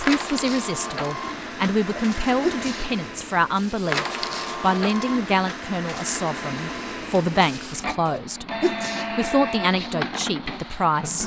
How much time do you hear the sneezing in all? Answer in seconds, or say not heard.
2 s.